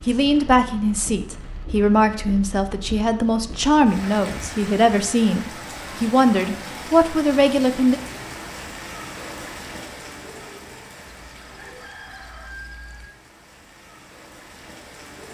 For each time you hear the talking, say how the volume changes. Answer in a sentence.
You can hear the talking from 0.0 to 8.0 s, at a steady volume.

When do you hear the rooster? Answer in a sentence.
The rooster can be heard from 11.2 to 13.1 s.